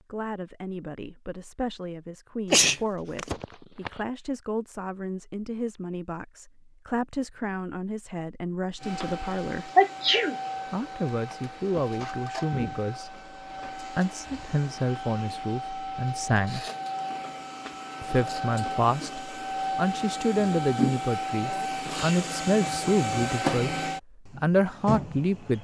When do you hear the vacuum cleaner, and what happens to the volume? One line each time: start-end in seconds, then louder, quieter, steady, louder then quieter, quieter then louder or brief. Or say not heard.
8.8-25.5 louder.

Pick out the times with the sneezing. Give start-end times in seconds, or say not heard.
2.5-3.9, 9.8-10.3, 21.4-22.2.